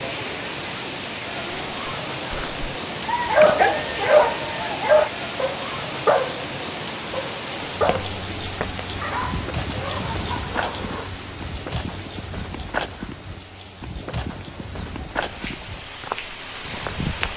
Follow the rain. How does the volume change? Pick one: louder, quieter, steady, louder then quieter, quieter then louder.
quieter.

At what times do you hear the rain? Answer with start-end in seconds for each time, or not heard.
0.0-17.3.